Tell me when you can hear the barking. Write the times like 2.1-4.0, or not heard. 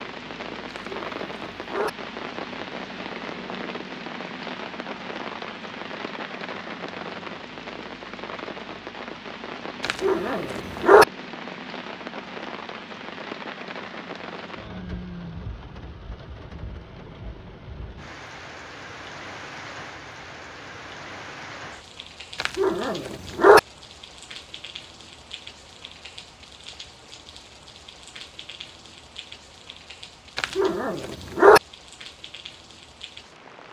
0.7-1.9, 9.8-11.1, 22.4-23.6, 30.4-31.6.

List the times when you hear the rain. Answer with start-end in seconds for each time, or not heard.
0.0-33.6.